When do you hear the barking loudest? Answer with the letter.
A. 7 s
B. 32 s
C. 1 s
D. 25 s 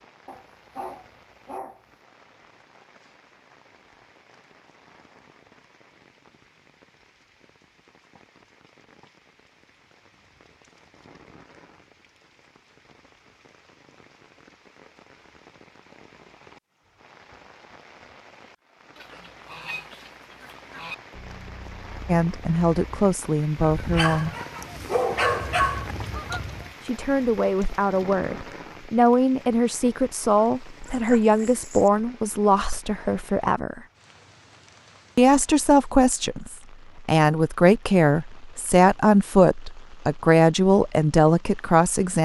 D.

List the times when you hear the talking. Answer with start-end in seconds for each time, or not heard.
22.1-24.4, 26.8-33.8, 35.1-42.2.